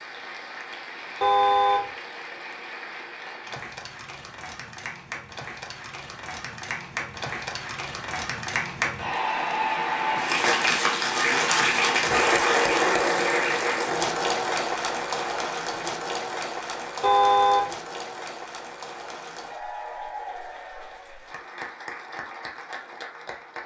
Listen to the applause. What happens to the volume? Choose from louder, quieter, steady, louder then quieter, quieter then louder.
louder then quieter.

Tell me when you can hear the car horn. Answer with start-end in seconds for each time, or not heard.
1.2-1.9, 17.0-17.7.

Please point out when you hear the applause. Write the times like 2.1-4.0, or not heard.
0.0-23.6.